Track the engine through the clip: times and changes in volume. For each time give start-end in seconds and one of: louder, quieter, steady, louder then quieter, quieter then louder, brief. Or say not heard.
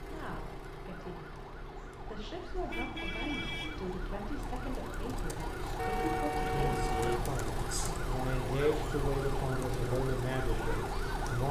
0.0-11.4 louder.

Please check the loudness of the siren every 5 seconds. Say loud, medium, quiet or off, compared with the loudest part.
medium, loud, loud.